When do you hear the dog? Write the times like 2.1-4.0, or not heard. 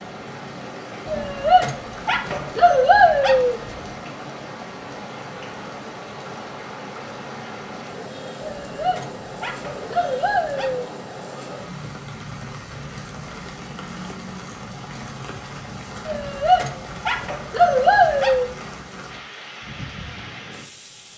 1.1-3.9, 8.4-10.9, 16.1-18.4.